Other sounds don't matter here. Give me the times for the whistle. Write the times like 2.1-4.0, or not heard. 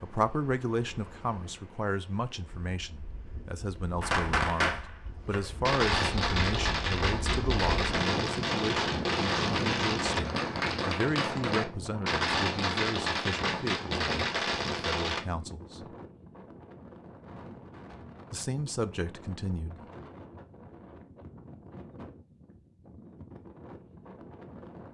not heard.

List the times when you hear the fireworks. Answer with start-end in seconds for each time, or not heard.
4.0-15.2.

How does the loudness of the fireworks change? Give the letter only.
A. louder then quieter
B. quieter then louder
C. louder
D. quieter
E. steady
E.